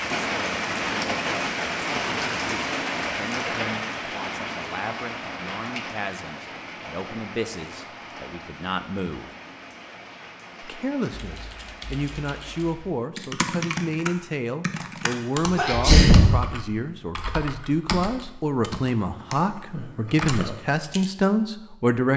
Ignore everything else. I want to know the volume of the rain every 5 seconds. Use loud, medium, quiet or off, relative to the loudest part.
loud, medium, quiet, off, off.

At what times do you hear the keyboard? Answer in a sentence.
The keyboard can be heard from 11.2 to 21.1 s.